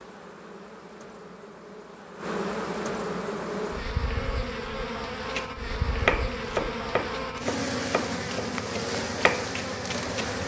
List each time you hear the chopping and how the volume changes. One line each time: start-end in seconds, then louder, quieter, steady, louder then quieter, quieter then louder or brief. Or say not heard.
5.2-10.4 quieter then louder.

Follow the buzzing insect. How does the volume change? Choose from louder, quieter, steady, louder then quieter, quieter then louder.
louder.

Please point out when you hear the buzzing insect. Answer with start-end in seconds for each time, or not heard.
0.0-10.4.